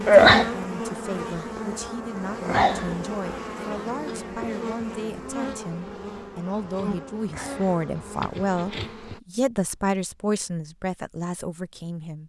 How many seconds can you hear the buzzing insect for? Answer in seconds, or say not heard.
9 s.